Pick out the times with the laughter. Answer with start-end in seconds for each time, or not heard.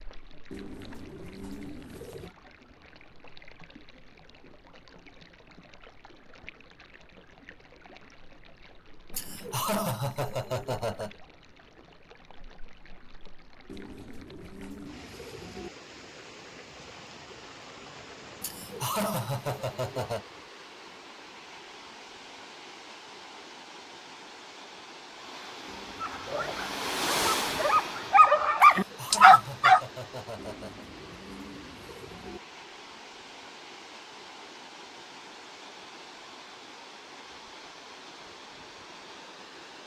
9.1-11.1, 18.4-20.2, 28.6-30.9.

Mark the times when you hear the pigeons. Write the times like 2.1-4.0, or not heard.
0.5-2.4, 13.7-15.7, 25.6-26.9, 30.4-32.4.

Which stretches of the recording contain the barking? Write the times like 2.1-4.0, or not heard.
26.0-29.8.